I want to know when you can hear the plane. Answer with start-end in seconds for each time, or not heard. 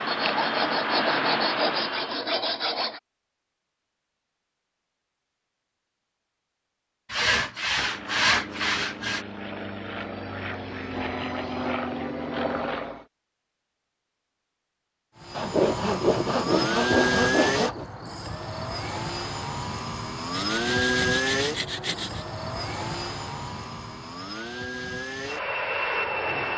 0.0-2.3, 7.8-13.1, 15.2-26.5.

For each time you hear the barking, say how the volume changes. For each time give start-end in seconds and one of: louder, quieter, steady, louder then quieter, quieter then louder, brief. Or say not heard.
not heard.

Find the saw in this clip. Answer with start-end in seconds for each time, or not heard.
0.1-3.0, 7.1-9.2, 15.3-17.9, 20.3-22.2.